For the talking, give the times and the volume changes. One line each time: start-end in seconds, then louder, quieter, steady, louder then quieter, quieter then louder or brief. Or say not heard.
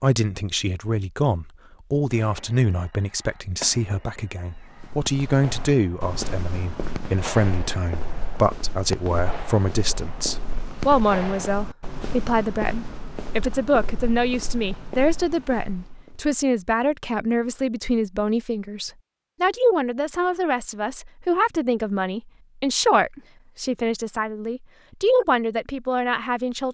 0.0-26.6 steady.